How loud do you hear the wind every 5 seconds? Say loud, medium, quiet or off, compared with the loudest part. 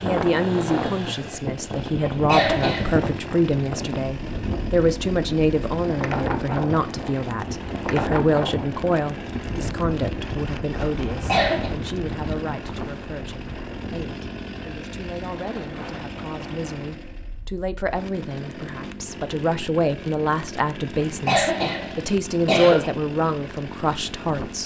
loud, loud, medium, medium, off.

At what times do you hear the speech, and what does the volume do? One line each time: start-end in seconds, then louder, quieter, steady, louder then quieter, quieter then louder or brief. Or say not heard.
0.0-24.6 quieter then louder.